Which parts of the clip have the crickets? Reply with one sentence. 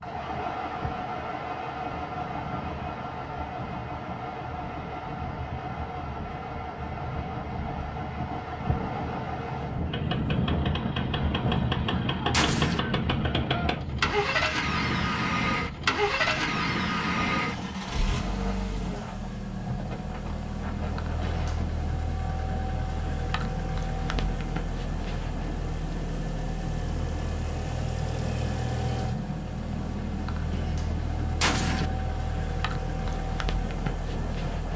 You can't hear the crickets here.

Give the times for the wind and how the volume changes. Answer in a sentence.
You can hear the wind from 0.0 to 34.7 s, getting louder then quieter.